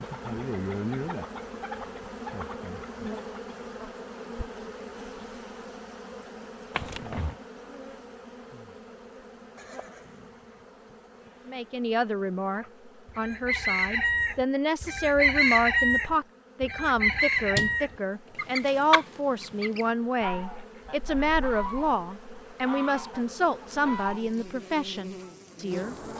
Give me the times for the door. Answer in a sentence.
You can hear the door from 6.7 to 7.3 s and from 17.1 to 18.4 s.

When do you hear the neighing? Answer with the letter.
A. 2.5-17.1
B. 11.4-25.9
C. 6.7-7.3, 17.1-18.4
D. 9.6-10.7
D.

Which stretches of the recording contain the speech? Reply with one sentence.
The speech can be heard from 11.4 to 25.9 s.